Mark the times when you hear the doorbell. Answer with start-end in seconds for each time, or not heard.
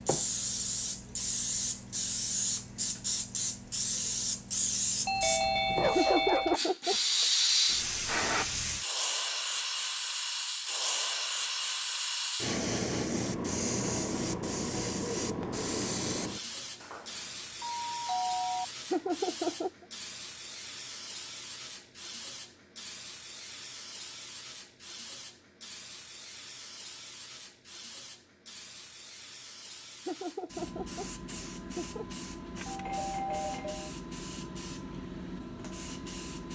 5.0-6.6, 16.8-18.6, 32.5-33.9.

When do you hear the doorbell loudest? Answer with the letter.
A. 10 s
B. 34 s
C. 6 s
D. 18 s
C.